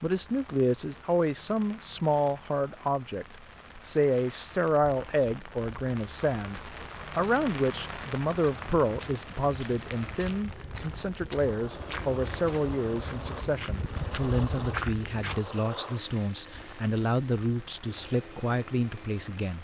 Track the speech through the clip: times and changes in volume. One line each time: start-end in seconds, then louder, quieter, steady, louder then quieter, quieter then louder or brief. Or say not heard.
0.0-19.5 steady.